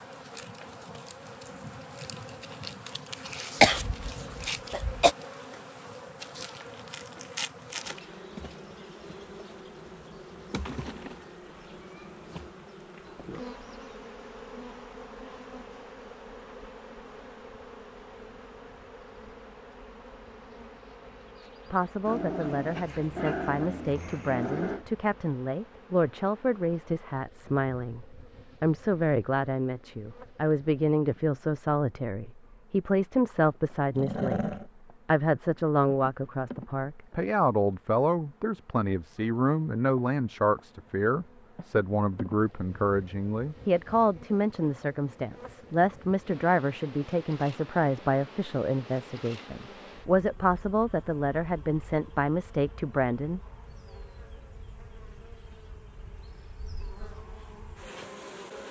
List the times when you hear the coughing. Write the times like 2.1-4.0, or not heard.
3.6-5.2.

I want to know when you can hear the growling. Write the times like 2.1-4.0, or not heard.
22.1-24.9, 34.0-34.6.